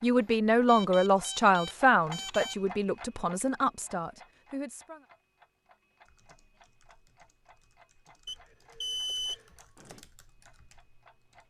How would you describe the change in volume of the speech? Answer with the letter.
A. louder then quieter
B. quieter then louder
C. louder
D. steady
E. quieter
E.